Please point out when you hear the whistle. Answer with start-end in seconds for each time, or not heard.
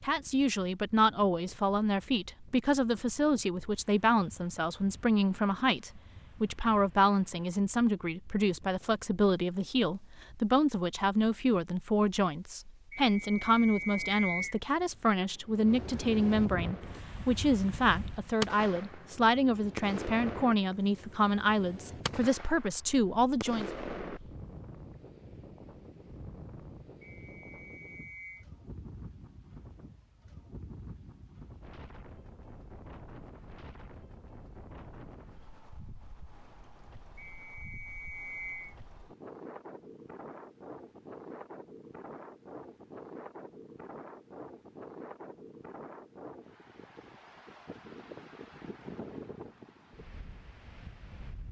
12.9-14.6, 27.0-28.4, 37.1-38.8.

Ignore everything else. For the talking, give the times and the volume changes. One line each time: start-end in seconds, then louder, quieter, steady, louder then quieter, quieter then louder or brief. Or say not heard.
0.0-23.7 steady.